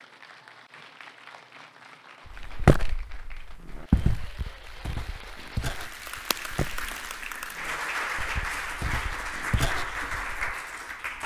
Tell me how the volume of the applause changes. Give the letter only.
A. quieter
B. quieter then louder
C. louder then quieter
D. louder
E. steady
D.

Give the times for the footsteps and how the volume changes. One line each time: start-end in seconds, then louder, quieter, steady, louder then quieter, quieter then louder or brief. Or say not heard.
2.3-10.6 quieter then louder.